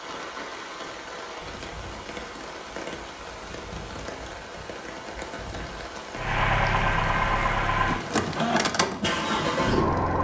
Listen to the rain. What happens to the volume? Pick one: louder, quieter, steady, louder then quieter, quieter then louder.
steady.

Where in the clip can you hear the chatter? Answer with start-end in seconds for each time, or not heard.
not heard.